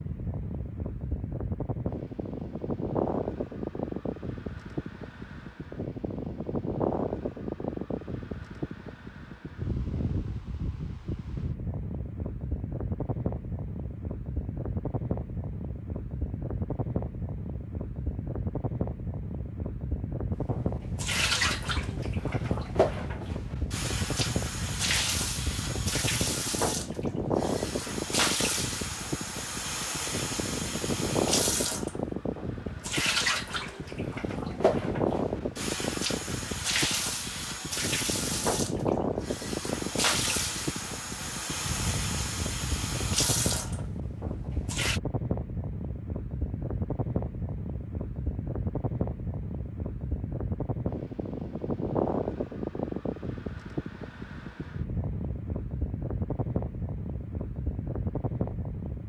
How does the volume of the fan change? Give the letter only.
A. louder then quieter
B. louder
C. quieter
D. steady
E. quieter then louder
D.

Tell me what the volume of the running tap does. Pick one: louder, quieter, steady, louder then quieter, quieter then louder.
steady.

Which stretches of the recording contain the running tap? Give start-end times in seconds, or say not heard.
20.5-45.0.